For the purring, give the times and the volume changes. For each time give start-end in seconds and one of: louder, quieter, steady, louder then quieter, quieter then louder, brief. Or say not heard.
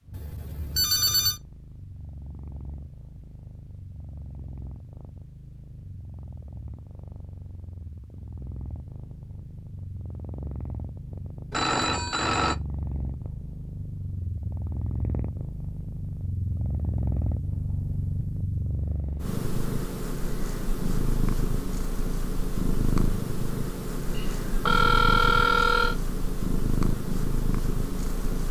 0.0-28.4 louder.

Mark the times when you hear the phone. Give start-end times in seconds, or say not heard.
0.1-1.4, 11.5-12.6, 24.1-25.9.